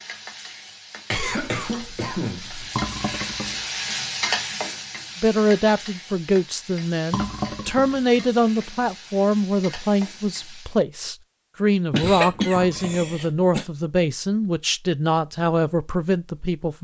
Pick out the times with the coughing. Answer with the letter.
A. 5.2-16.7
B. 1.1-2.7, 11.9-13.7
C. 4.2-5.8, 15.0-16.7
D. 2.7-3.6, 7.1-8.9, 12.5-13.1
B.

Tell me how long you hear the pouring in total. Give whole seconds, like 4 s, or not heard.
3 s.